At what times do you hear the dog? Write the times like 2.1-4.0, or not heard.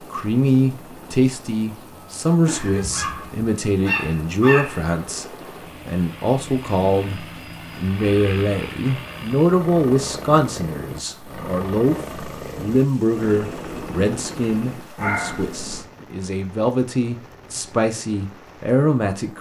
2.5-5.2, 14.9-15.8.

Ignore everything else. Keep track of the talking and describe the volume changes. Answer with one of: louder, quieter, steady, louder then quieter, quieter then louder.
steady.